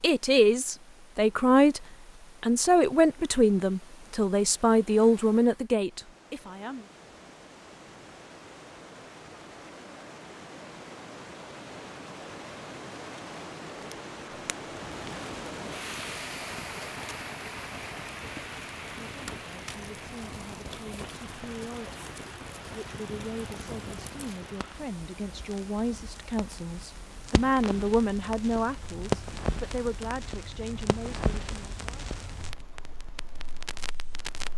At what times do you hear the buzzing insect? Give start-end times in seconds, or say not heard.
not heard.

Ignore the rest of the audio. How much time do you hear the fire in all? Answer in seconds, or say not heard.
21 s.